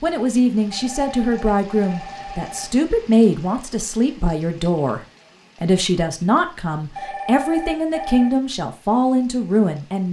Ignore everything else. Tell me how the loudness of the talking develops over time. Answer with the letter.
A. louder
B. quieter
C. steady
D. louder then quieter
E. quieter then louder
C.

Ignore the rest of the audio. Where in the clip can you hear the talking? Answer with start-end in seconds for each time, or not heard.
0.0-5.0, 5.6-10.0.